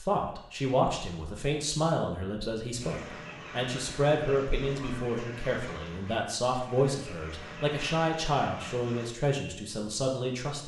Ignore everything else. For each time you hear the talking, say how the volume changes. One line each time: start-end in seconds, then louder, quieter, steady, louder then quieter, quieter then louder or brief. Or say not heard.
0.0-10.6 steady.